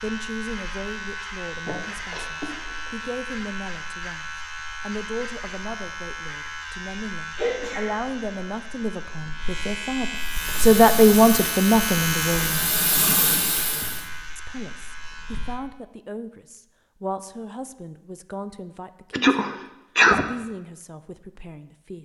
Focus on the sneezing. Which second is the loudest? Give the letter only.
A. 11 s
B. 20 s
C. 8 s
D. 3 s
B.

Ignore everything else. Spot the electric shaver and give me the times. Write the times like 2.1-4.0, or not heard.
0.0-15.6.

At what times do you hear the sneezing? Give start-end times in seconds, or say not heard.
1.6-2.9, 7.3-8.4, 19.1-20.2.